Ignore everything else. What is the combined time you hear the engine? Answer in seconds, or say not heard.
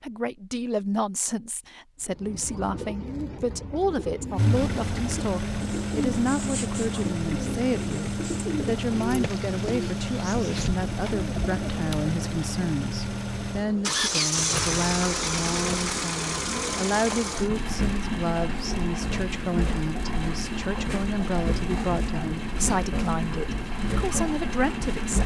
21 s.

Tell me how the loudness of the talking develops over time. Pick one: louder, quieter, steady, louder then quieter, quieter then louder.
steady.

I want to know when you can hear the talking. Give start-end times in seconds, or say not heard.
0.0-25.2.